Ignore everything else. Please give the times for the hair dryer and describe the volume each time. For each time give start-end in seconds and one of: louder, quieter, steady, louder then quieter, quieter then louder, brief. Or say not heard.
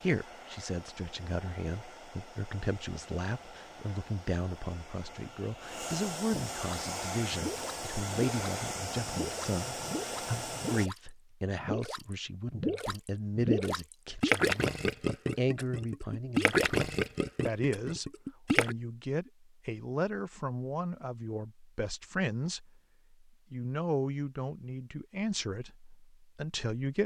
0.0-10.9 louder.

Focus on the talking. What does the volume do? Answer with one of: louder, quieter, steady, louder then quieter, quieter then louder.
steady.